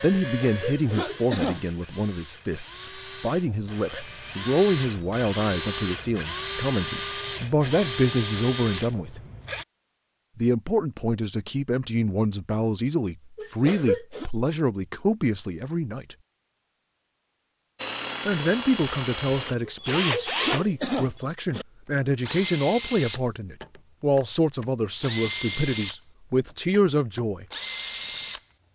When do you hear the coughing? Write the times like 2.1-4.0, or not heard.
0.2-1.6, 13.3-14.3, 19.6-21.6.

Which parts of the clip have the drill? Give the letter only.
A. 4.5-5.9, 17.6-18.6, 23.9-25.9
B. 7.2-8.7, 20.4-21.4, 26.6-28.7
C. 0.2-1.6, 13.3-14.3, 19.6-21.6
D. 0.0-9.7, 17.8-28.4
D.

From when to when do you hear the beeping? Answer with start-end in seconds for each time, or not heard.
not heard.